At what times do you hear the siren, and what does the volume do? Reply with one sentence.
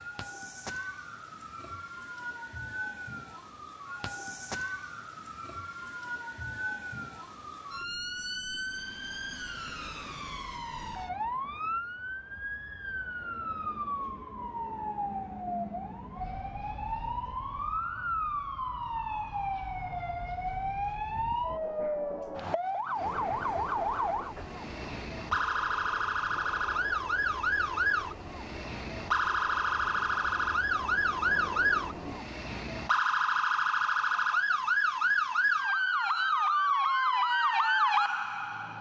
The siren can be heard from 0.0 to 38.7 s, getting louder.